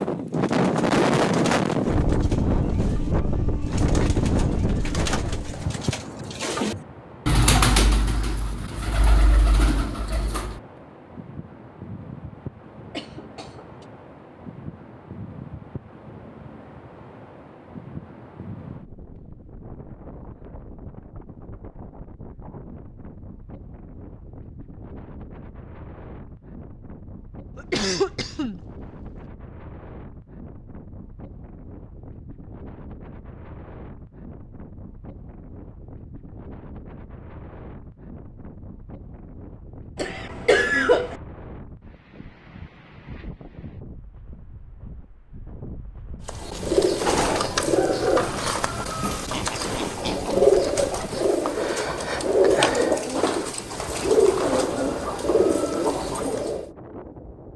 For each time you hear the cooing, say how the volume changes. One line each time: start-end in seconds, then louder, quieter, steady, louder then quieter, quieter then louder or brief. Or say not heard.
0.3-10.6 louder then quieter
46.2-56.7 steady.